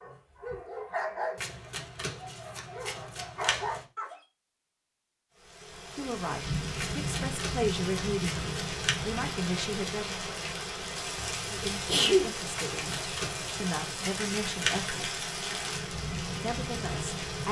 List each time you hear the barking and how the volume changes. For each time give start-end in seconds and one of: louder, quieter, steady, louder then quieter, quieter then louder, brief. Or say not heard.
0.0-4.2 quieter then louder.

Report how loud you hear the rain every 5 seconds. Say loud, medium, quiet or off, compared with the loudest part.
off, loud, loud, loud.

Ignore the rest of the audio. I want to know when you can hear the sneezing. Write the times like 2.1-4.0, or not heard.
11.2-12.3.